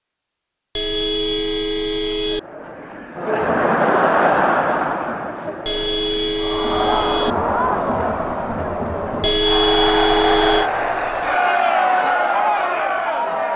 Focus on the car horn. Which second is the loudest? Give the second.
10 s.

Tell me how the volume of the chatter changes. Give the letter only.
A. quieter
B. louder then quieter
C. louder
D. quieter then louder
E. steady
D.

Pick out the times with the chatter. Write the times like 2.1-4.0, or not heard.
2.2-13.5.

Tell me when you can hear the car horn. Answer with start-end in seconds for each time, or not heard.
0.8-2.4, 5.7-7.3, 9.2-10.7.